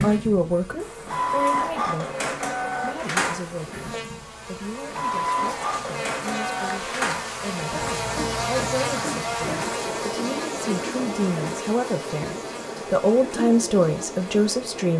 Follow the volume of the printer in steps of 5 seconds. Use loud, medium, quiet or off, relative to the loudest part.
loud, loud, medium.